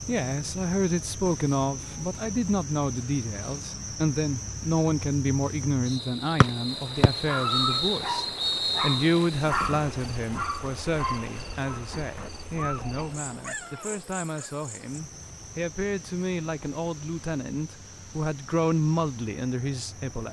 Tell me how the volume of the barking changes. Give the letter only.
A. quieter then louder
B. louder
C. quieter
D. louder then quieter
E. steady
C.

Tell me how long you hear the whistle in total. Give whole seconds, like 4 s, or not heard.
3 s.